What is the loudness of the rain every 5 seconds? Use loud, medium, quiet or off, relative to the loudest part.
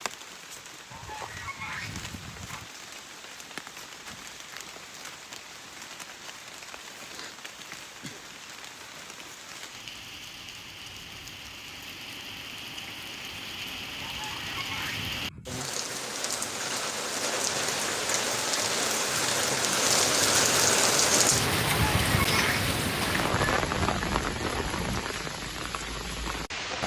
quiet, quiet, quiet, loud, loud, medium.